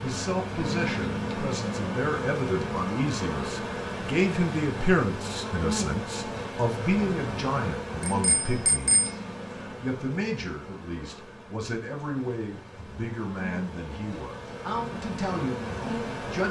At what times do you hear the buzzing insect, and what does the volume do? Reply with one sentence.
You can hear the buzzing insect from 0.0 to 16.4 s, getting quieter then louder.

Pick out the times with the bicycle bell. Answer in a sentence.
You can hear the bicycle bell from 8.0 to 9.1 s.